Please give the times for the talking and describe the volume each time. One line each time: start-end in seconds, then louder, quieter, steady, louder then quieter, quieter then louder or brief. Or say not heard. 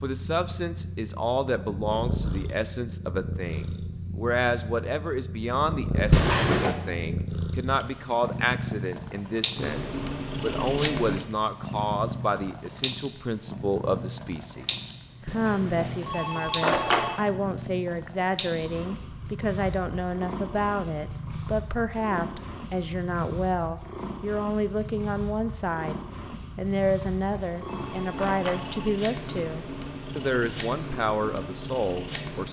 0.0-32.4 steady.